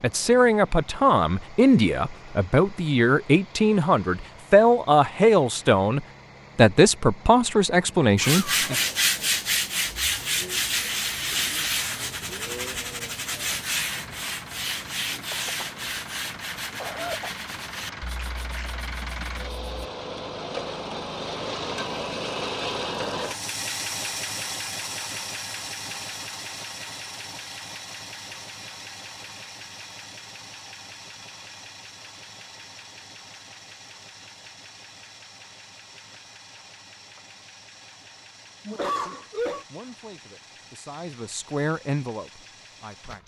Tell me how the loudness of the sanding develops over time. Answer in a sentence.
The loudness of the sanding goes down.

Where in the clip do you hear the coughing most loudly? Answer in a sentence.
The loudest moment of the coughing is at 39 seconds.